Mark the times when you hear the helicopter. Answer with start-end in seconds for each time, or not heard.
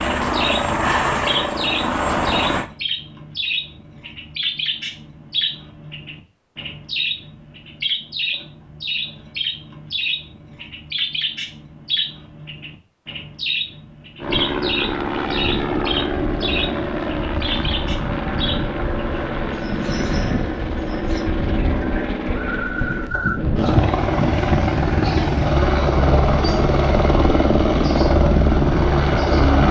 0.0-2.7, 14.2-29.6.